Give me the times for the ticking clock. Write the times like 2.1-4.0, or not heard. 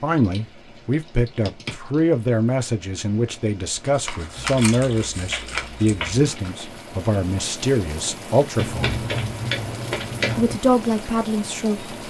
not heard.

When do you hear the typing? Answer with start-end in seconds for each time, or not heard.
0.1-2.0, 4.3-6.3, 8.6-10.6.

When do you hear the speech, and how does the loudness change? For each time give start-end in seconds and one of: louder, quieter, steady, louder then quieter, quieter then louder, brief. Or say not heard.
0.0-9.0 steady
10.3-11.9 brief.